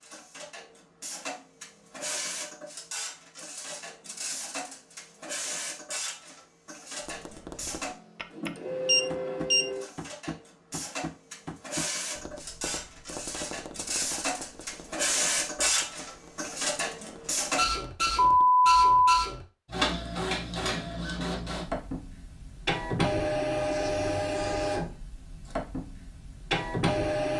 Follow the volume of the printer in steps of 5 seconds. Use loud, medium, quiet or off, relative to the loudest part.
medium, medium, medium, loud, loud, loud.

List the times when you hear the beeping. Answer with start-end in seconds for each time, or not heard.
8.8-9.7, 18.1-19.2.